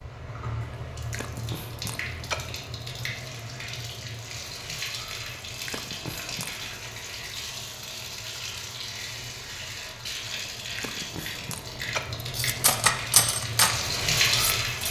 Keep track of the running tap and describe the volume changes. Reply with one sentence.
The volume of the running tap goes up.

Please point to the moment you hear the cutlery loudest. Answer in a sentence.
The loudest moment of the cutlery is at 13 seconds.